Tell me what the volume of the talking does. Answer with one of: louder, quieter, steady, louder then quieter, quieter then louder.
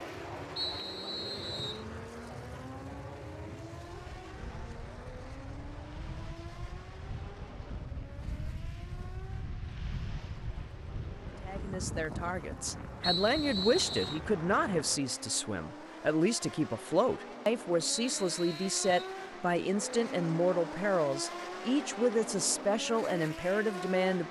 steady.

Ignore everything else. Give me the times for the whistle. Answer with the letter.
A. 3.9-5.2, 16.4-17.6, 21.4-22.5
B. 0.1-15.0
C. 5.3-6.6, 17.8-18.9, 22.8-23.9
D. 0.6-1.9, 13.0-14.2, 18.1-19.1
D.